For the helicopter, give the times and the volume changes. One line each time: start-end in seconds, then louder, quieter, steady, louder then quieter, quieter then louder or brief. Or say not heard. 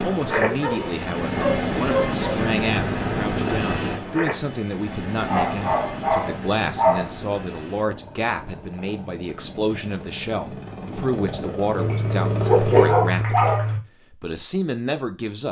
0.0-12.8 quieter then louder.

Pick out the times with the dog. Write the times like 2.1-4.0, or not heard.
0.3-2.4, 5.2-7.1, 11.8-13.8.